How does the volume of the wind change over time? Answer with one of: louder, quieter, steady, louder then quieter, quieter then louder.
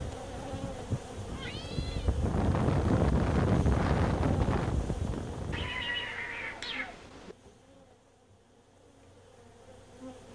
louder then quieter.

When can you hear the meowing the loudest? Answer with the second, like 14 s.
6 s.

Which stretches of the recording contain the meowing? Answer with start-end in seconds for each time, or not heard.
1.2-2.1, 5.5-7.3.